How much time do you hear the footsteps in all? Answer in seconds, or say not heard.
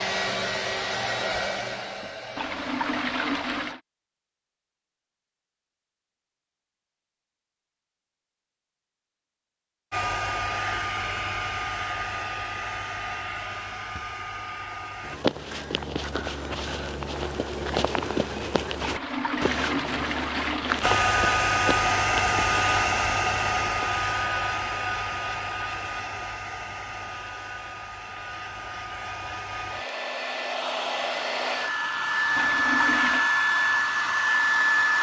9 s.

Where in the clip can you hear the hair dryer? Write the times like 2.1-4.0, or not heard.
0.0-3.8, 9.9-15.2, 20.8-34.9.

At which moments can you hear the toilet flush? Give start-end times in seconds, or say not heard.
2.4-3.8, 18.8-20.8, 32.4-33.3.